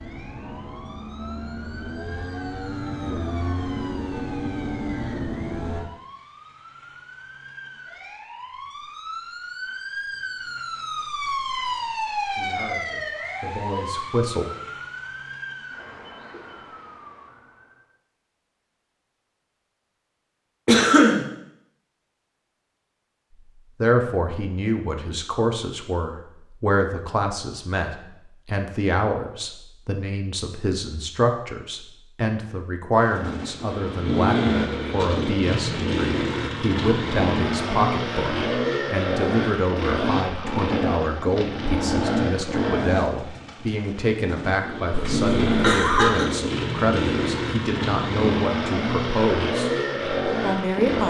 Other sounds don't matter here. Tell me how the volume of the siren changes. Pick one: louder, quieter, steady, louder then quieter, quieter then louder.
louder then quieter.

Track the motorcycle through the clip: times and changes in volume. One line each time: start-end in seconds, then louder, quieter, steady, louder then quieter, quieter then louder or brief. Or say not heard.
0.0-5.9 louder
33.0-51.0 steady.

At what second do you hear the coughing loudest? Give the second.
21 s.